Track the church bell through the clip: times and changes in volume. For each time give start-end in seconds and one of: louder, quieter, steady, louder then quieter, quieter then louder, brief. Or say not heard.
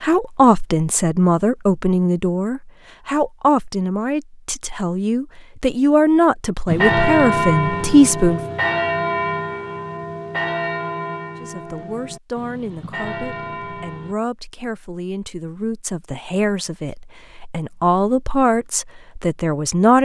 6.7-14.2 quieter.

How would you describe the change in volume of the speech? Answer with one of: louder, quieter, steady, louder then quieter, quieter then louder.
quieter then louder.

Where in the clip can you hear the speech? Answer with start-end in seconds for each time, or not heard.
0.0-8.4, 11.4-20.0.